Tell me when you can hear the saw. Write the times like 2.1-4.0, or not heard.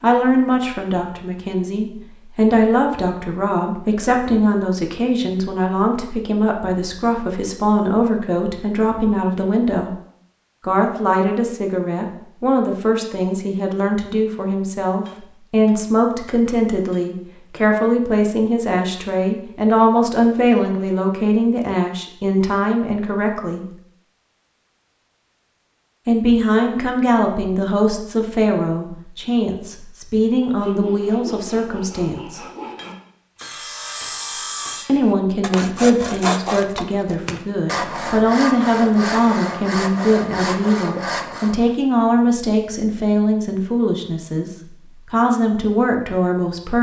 30.4-41.7.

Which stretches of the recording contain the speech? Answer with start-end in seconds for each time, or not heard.
0.0-9.9, 10.6-23.6, 26.1-32.4, 34.9-44.5, 45.1-46.7.